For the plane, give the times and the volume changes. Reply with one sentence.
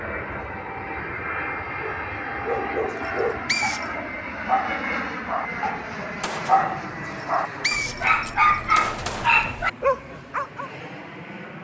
You can hear the plane from 0.0 to 11.5 s, getting quieter.